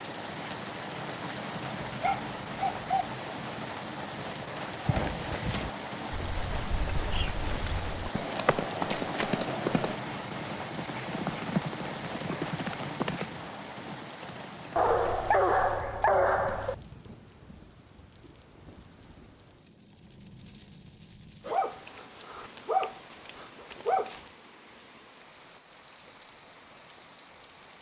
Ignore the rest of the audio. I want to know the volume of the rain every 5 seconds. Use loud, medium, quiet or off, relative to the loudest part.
loud, loud, loud, quiet, quiet, quiet.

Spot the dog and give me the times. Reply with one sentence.
You can hear the dog from 1.9 to 3.1 s, from 14.8 to 16.8 s and from 21.4 to 24.2 s.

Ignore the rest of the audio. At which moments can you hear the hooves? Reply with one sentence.
You can hear the hooves from 4.8 to 14.9 s.